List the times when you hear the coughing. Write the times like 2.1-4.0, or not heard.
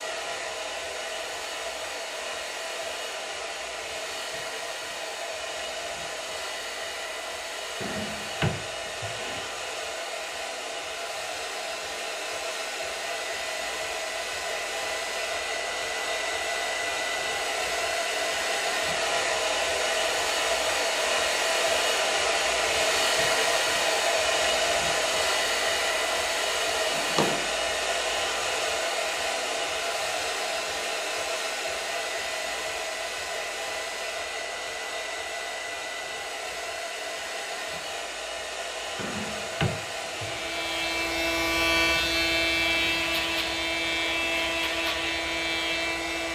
not heard.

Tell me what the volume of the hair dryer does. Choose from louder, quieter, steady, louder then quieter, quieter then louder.
louder then quieter.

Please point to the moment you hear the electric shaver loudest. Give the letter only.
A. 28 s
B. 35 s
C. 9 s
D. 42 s
D.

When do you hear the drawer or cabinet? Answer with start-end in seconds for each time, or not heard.
7.8-9.5, 26.8-27.5, 39.0-40.5.